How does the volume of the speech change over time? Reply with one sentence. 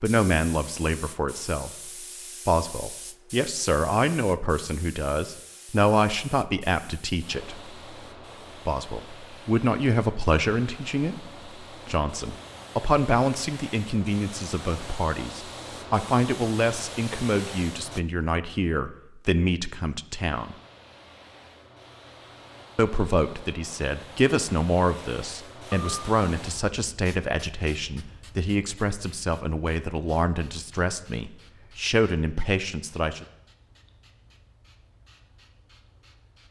The volume of the speech stays about the same.